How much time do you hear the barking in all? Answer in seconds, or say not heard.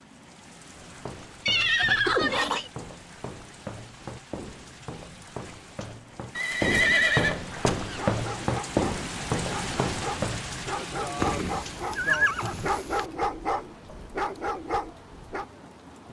8 s.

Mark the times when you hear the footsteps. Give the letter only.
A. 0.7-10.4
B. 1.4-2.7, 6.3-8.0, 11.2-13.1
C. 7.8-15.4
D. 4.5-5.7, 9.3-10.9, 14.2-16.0
A.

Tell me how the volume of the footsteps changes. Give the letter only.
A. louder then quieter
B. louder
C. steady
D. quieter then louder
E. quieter
B.